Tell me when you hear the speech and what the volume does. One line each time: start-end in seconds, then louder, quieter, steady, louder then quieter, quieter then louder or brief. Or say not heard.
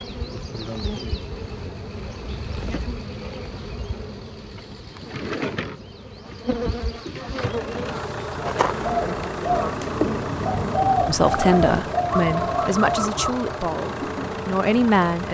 11.1-15.2 quieter then louder.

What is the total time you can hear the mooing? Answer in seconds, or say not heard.
not heard.